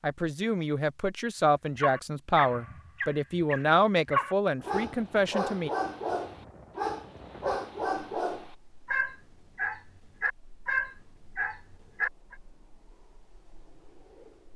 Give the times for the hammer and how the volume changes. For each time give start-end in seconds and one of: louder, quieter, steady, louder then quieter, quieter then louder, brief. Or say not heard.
not heard.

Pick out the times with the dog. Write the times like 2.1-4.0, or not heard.
1.8-12.3.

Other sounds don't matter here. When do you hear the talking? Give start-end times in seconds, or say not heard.
0.0-5.7.